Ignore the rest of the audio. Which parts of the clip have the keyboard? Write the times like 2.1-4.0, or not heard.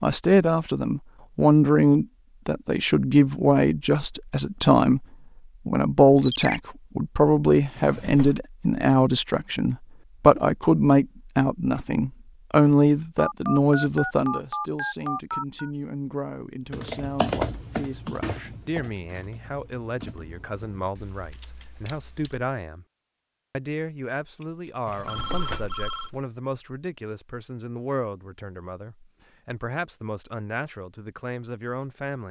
16.6-22.4.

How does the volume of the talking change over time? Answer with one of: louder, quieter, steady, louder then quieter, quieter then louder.
quieter.